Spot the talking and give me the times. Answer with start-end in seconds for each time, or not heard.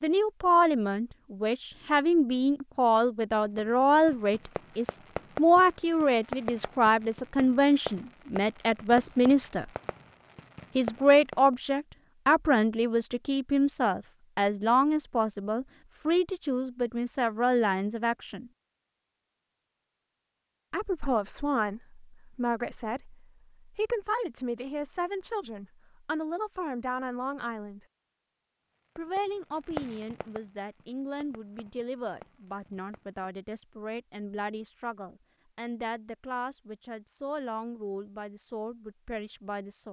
0.0-9.7, 10.8-18.5, 20.7-27.8, 28.9-39.8.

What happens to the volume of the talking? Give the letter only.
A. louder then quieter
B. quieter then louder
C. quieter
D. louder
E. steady
C.